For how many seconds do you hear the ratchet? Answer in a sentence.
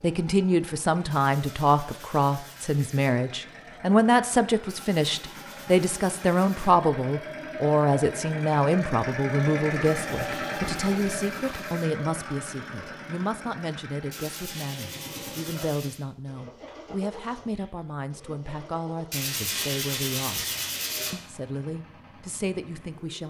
The ratchet can't be heard in this clip.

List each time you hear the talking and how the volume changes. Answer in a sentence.
You can hear the talking from 0.0 to 20.4 s, getting quieter; and briefly from 21.1 to 23.2 s.